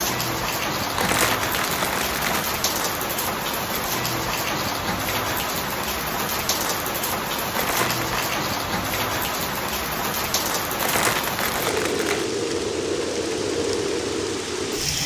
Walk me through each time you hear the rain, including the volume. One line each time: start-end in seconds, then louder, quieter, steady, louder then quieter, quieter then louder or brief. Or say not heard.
0.0-15.0 steady.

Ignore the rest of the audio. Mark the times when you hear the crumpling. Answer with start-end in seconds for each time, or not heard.
0.9-2.5, 7.5-8.3, 10.8-12.3.